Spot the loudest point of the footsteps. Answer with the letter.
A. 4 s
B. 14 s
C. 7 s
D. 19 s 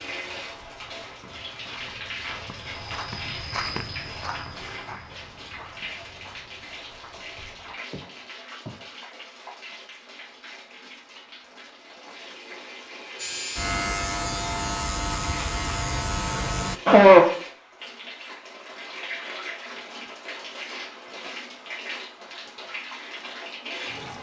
A.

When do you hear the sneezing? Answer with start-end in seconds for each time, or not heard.
16.2-17.4.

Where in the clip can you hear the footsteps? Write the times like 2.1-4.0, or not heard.
0.0-8.8.